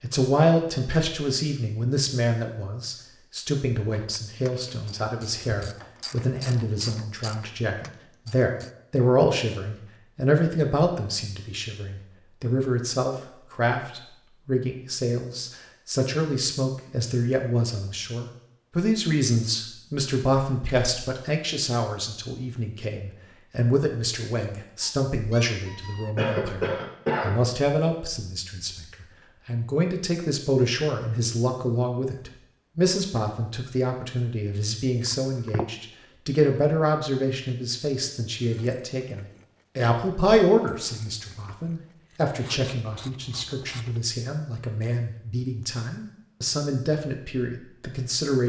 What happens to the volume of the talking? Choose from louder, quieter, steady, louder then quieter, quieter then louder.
steady.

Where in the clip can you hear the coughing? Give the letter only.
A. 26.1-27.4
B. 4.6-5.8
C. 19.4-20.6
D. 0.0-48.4
A.